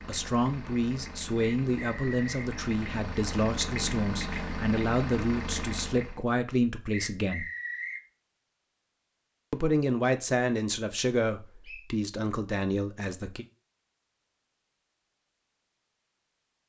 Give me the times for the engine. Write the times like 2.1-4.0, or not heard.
0.0-6.2.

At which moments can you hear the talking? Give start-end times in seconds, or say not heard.
0.1-7.5, 9.5-13.4.